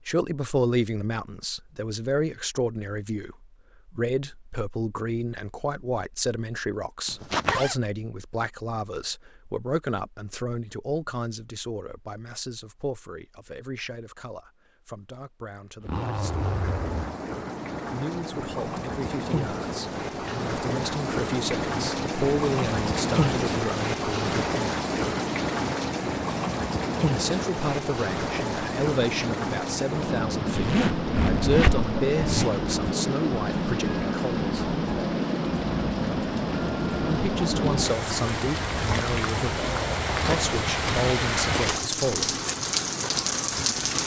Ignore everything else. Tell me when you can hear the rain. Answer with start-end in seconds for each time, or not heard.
16.2-44.0.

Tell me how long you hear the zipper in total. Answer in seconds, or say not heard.
4 s.